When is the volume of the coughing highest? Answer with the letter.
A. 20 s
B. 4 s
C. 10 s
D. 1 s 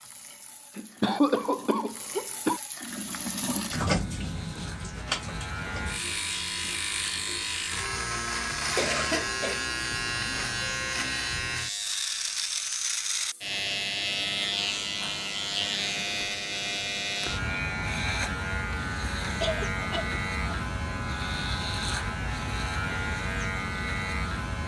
D.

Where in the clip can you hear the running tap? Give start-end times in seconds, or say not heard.
0.0-6.2.